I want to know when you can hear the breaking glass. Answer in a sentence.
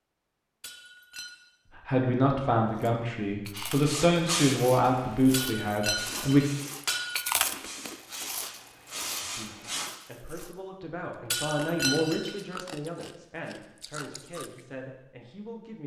You can hear the breaking glass from 0.6 to 1.3 s, from 5.3 to 7.3 s and from 11.3 to 12.3 s.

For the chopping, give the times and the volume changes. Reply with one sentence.
The chopping can't be heard in this clip.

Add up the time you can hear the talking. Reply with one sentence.
The talking can be heard for 11 seconds in total.